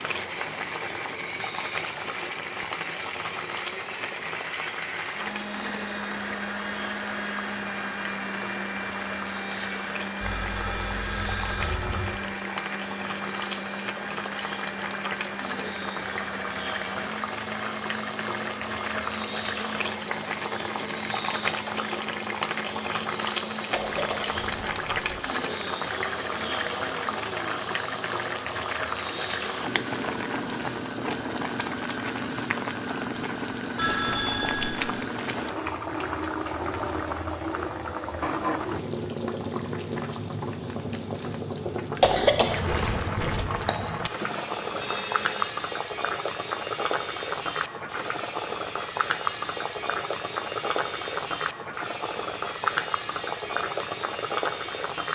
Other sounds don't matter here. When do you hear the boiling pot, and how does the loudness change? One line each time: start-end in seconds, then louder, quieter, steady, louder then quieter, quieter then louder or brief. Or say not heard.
0.0-55.0 louder.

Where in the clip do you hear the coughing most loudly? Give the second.
42 s.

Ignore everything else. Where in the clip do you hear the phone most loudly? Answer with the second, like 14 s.
34 s.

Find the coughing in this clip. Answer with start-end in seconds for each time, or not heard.
23.7-25.2, 42.0-43.7.